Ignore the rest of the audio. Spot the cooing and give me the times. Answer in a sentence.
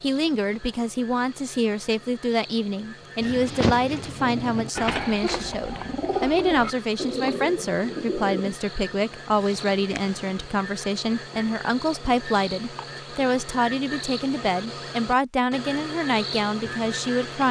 The cooing can be heard from 3.2 to 8.6 s.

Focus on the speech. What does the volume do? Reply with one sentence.
The loudness of the speech stays about the same.